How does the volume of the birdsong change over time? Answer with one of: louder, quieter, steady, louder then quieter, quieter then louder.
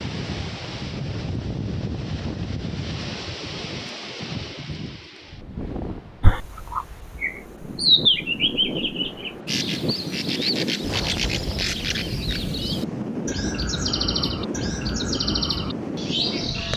quieter.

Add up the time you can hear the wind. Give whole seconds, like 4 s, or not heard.
17 s.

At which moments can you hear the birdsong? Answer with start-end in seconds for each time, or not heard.
6.2-16.7.